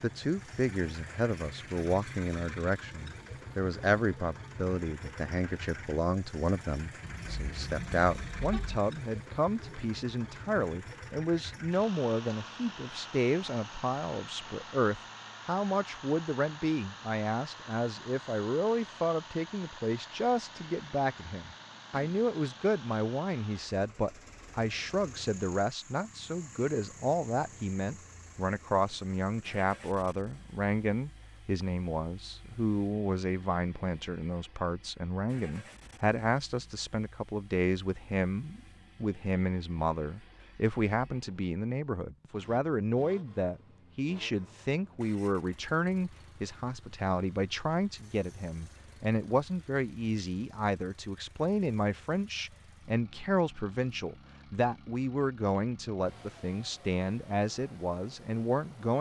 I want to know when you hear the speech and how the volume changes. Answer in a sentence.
You can hear the speech from 0.0 to 58.9 s, at a steady volume.